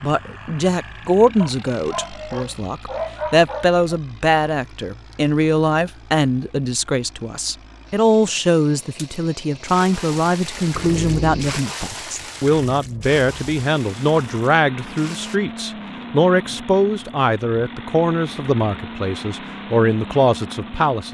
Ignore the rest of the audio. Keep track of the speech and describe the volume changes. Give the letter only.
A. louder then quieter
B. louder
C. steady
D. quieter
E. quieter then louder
C.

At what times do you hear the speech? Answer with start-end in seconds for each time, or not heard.
0.0-21.0.